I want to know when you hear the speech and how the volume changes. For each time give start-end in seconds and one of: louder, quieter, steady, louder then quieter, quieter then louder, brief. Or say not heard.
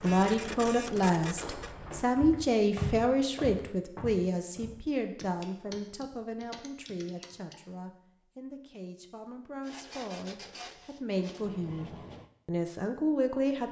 0.0-13.6 quieter then louder.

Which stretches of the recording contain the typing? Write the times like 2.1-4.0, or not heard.
5.2-7.7.